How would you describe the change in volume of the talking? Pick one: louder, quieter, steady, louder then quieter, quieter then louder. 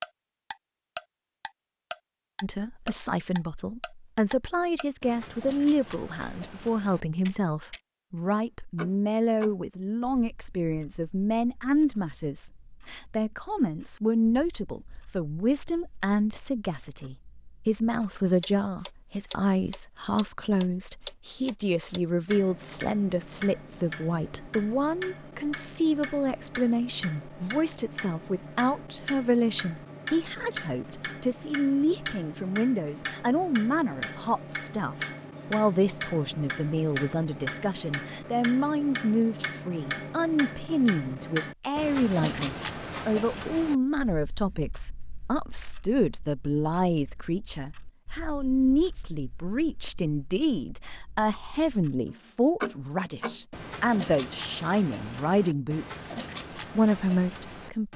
steady.